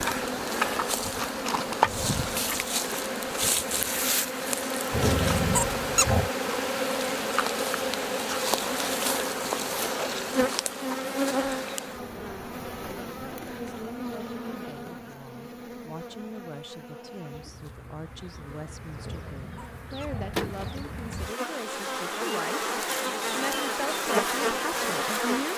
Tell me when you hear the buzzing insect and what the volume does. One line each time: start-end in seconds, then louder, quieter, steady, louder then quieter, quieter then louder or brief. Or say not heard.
0.0-25.5 quieter then louder.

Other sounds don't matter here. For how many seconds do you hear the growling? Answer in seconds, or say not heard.
4 s.